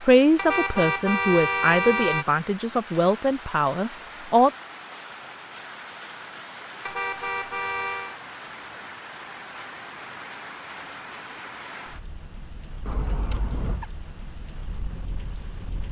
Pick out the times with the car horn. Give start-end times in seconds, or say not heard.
0.3-2.2, 6.8-8.2, 12.8-13.8.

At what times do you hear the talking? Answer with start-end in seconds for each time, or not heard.
0.0-4.5.